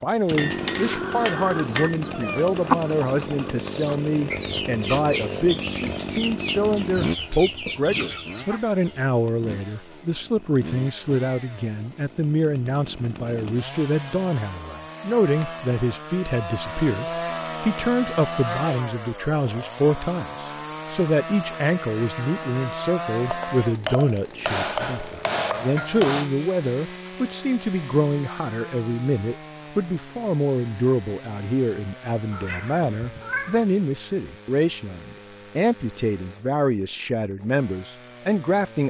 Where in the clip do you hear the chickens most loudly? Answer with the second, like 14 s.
3 s.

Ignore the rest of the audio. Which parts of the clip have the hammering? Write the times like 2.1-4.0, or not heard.
0.2-2.0, 23.3-26.3.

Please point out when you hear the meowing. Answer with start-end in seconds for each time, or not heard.
2.1-2.6, 32.3-33.6.